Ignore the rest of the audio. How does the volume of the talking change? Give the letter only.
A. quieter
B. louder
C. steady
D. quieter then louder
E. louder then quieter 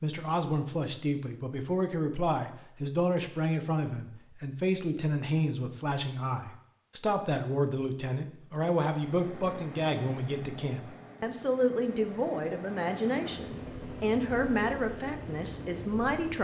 C.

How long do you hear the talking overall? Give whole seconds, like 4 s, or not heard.
16 s.